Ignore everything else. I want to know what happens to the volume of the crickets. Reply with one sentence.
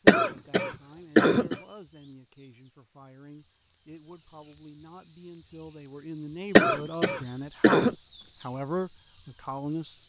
The loudness of the crickets goes down, then up.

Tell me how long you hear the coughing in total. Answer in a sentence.
The coughing can be heard for 3 seconds in total.